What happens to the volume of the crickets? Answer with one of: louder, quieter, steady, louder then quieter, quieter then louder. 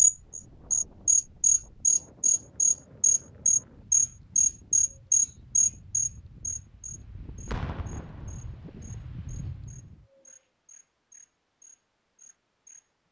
quieter.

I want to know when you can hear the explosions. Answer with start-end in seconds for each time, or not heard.
7.5-8.7.